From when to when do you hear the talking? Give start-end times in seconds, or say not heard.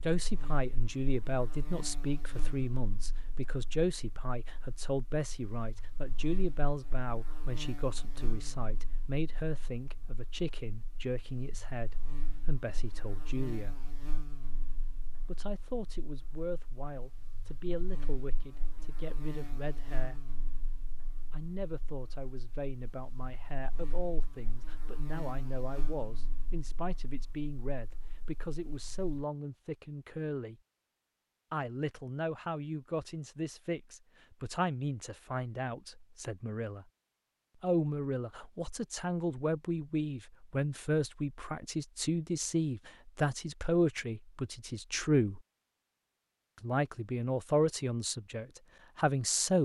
0.0-13.8, 15.2-20.3, 21.3-30.6, 31.5-36.9, 37.6-45.4, 46.6-49.6.